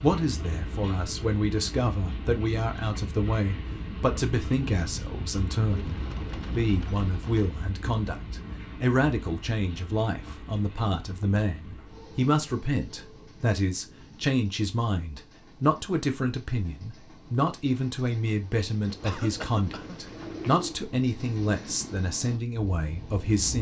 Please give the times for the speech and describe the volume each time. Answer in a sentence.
The speech can be heard from 0.0 to 23.5 s, at a steady volume.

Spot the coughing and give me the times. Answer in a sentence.
The coughing can be heard from 19.0 to 20.0 s.